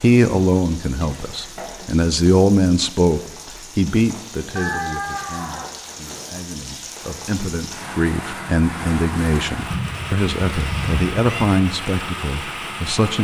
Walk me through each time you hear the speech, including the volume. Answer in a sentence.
You can hear the speech from 0.0 to 13.1 s, getting quieter then louder.